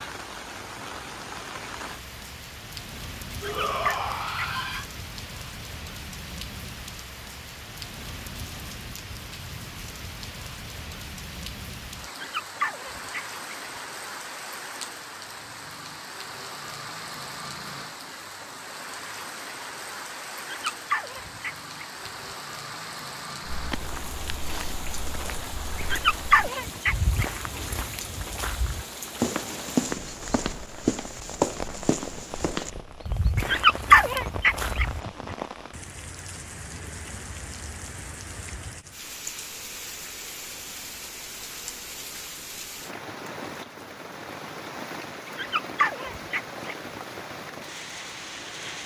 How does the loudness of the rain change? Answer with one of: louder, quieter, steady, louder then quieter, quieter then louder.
steady.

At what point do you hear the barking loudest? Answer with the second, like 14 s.
34 s.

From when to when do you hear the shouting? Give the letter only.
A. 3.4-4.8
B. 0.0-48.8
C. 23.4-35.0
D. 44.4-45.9
A.